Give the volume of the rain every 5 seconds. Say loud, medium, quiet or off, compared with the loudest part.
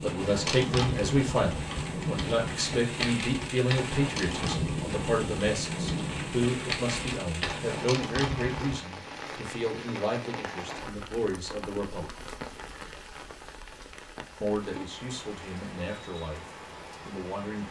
loud, loud, medium, medium.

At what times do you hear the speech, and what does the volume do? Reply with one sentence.
You can hear the speech from 0.0 to 12.1 s, getting quieter; briefly from 14.4 to 16.4 s; and briefly from 17.1 to 17.6 s.